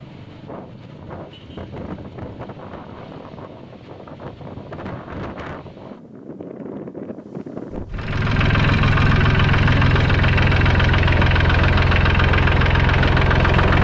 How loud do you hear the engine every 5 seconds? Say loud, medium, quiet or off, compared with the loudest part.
off, loud, loud.